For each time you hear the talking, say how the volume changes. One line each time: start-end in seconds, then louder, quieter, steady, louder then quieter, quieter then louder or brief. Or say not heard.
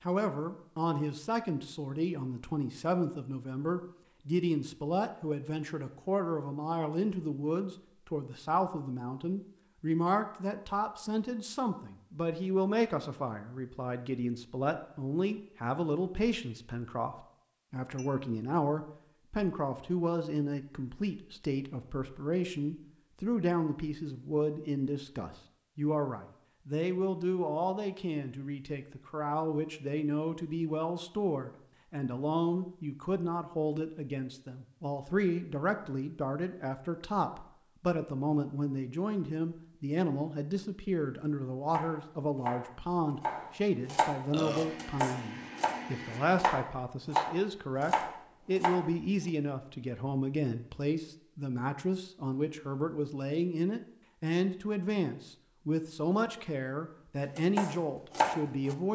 0.0-58.9 steady.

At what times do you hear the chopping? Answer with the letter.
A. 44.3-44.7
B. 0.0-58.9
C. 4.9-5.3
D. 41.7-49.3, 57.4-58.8
D.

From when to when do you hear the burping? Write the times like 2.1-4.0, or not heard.
44.3-44.7.